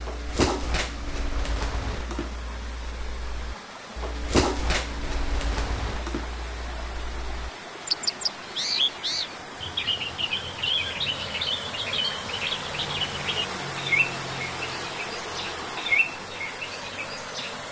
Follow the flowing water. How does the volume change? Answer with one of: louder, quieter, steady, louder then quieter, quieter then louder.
louder.